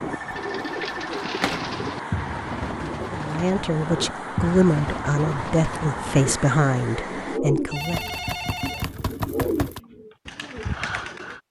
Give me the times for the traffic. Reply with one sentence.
You can hear the traffic from 0.0 to 7.4 s.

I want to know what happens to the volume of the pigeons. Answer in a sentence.
The loudness of the pigeons stays about the same.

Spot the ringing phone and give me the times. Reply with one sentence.
You can hear the ringing phone from 0.1 to 1.8 s and from 7.7 to 9.8 s.